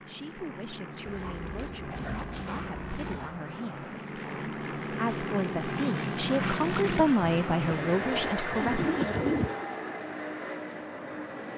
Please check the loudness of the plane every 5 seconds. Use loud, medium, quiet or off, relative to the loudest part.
medium, loud, medium.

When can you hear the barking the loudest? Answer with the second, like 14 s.
2 s.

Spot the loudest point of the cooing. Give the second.
9 s.